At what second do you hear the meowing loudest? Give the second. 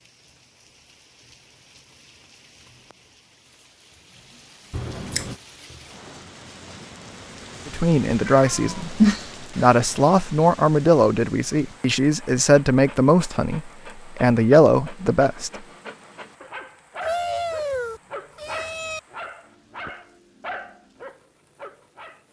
9 s.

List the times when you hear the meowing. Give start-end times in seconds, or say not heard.
4.7-5.3, 8.2-9.7, 17.0-19.0.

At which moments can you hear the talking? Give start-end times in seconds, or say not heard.
7.7-15.5.